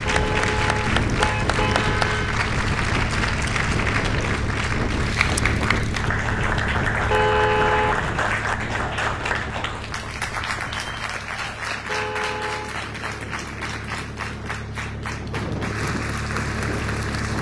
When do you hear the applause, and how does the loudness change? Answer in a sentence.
You can hear the applause from 0.0 to 17.3 s, getting quieter.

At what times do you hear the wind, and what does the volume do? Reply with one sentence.
The wind can be heard from 0.0 to 17.3 s, getting quieter then louder.